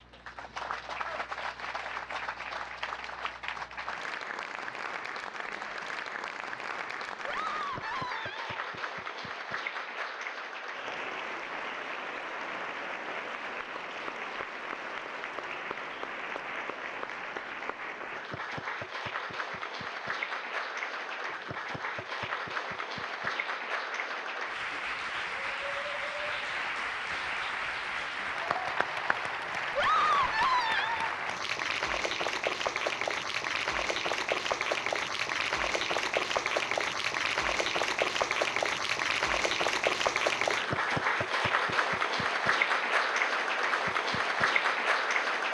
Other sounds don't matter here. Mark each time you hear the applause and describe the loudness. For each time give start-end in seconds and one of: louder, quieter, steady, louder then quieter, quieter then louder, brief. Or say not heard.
0.0-45.4 louder.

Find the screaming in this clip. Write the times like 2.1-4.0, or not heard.
7.2-8.6, 29.8-31.1.